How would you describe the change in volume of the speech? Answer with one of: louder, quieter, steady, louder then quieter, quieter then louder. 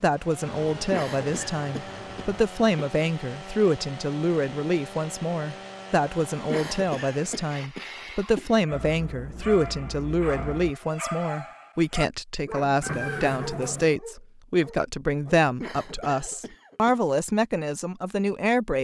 steady.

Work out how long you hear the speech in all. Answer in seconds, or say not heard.
19 s.